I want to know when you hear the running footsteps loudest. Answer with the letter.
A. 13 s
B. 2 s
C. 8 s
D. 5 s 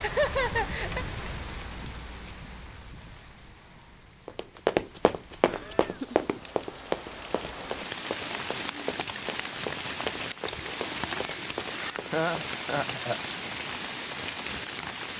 D.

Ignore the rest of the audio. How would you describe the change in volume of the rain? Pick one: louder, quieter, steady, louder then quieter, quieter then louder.
quieter then louder.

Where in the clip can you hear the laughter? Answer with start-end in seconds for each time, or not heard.
0.0-1.1, 5.5-6.2, 12.1-13.2.